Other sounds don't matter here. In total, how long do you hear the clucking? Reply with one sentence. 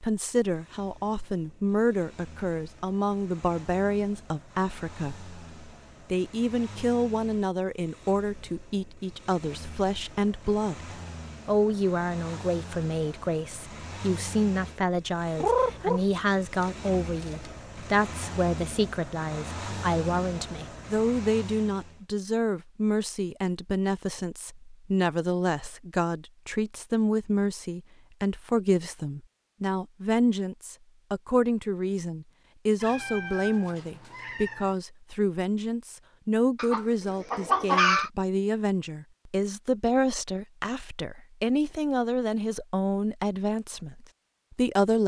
You can hear the clucking for 4 seconds altogether.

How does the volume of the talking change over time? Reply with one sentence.
The loudness of the talking stays about the same.